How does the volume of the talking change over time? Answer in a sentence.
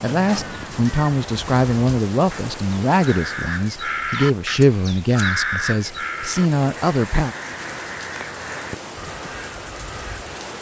The loudness of the talking stays about the same.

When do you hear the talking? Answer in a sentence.
You can hear the talking from 0.0 to 7.3 s.